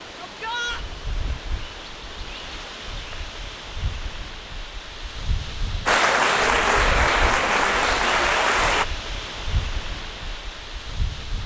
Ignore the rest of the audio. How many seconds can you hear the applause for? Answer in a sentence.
The applause can be heard for 3 seconds in total.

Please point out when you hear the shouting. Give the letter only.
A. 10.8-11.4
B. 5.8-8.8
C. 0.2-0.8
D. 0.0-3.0
C.